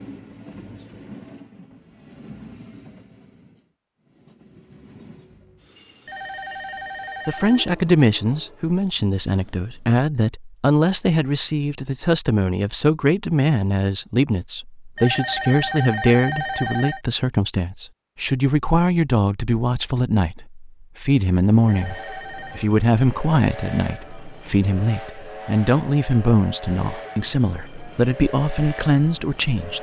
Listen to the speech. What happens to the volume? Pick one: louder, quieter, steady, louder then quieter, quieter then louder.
steady.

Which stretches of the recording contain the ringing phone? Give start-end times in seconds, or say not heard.
6.0-7.8, 14.9-17.0, 21.6-22.7.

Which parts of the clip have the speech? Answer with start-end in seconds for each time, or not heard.
7.2-29.7.